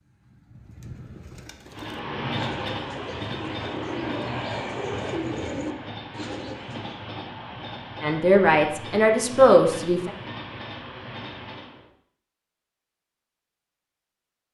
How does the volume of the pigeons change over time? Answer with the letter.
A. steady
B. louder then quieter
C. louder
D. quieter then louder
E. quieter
C.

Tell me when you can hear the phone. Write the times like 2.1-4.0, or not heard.
not heard.